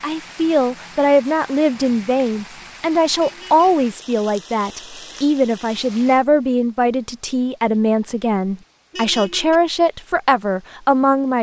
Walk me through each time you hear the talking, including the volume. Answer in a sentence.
You can hear the talking from 0.0 to 11.3 s, at a steady volume.